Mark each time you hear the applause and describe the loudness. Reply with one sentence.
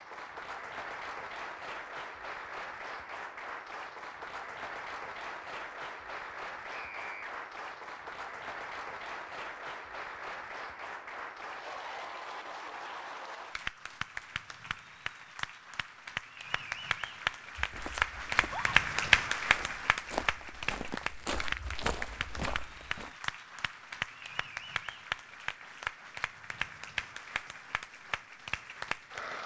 The applause can be heard from 0.0 to 29.4 s, getting louder then quieter.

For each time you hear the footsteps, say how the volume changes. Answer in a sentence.
You can hear the footsteps from 17.6 to 23.1 s, getting louder.